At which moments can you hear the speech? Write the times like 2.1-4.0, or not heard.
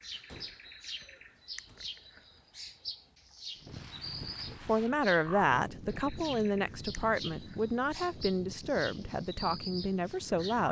4.5-10.6.